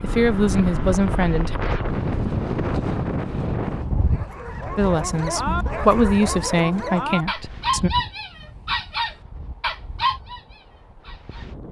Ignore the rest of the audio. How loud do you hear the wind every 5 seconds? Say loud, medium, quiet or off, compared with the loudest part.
loud, quiet, quiet.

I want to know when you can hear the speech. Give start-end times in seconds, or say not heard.
0.0-1.6, 4.8-7.9.